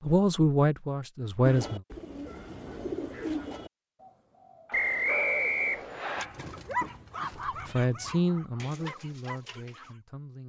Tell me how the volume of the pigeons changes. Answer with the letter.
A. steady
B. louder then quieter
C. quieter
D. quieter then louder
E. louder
C.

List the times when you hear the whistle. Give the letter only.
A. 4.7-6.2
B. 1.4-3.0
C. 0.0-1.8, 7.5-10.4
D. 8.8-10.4
A.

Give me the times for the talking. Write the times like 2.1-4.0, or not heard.
0.0-1.8, 7.5-10.4.